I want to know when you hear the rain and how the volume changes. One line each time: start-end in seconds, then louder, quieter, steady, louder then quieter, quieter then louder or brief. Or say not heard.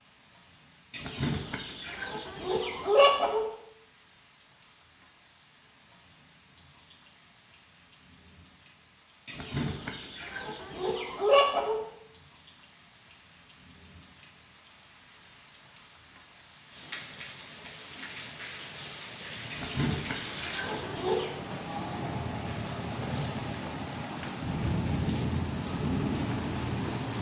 0.0-27.1 louder.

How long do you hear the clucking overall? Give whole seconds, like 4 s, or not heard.
7 s.